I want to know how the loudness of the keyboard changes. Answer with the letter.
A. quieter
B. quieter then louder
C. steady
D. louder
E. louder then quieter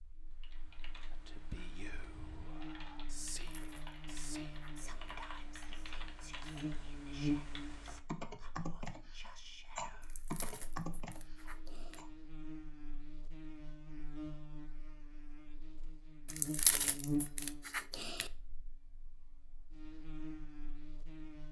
D.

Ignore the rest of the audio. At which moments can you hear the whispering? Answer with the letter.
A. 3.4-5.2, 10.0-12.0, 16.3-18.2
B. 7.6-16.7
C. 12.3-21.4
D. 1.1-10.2
D.